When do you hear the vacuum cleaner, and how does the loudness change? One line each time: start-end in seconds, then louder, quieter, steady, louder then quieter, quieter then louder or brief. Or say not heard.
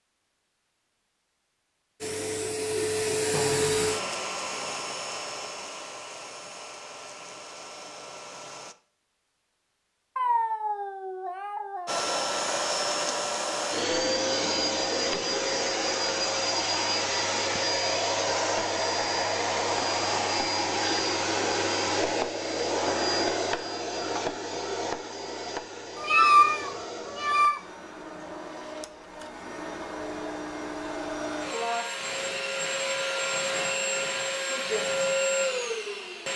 2.0-8.8 quieter
11.8-36.3 quieter then louder.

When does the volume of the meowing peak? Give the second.
26 s.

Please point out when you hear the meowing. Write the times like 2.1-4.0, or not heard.
10.2-12.1, 25.9-27.6.